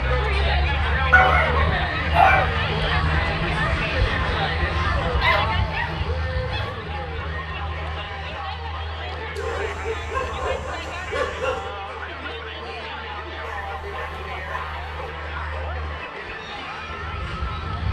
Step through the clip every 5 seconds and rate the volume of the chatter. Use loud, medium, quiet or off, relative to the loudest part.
loud, medium, medium, medium.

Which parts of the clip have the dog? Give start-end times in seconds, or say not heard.
1.1-2.5, 5.2-6.7, 9.3-11.8, 13.4-14.9.